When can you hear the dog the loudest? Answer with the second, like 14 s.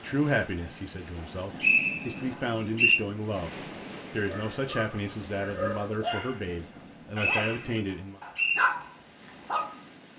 9 s.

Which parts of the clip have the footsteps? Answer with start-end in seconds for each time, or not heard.
not heard.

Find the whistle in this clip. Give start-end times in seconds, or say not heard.
1.6-3.0, 6.8-8.7.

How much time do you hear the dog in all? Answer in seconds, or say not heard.
5 s.